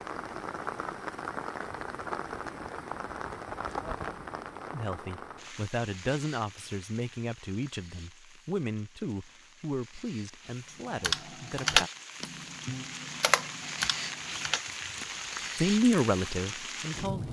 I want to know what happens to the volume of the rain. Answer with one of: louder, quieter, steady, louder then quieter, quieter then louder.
quieter then louder.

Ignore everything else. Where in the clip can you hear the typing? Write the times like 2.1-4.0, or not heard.
10.9-15.8.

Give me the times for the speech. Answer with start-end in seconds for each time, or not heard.
4.7-11.9, 15.6-17.2.